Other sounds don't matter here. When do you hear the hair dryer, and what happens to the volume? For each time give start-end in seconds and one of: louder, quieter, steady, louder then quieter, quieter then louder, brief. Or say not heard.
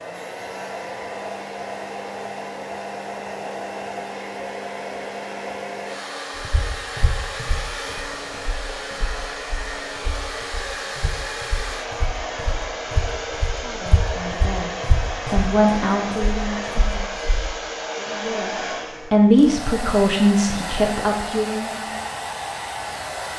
0.0-23.3 steady.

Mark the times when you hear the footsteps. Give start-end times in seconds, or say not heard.
6.4-17.5.